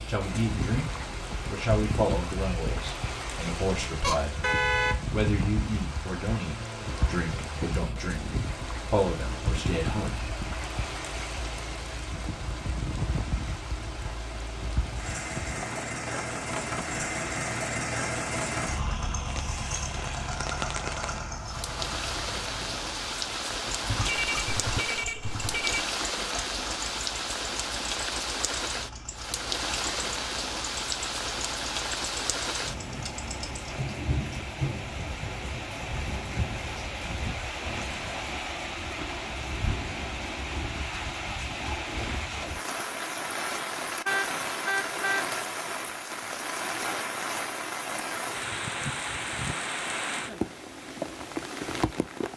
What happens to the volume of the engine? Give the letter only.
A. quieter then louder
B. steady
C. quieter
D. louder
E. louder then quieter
E.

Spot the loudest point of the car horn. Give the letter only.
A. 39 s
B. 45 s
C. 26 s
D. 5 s
D.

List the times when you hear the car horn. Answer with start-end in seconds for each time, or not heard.
4.0-5.0, 23.8-25.9, 44.0-45.2.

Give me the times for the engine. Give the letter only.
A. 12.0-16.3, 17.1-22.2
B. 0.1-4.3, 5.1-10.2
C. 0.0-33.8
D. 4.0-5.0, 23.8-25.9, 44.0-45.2
C.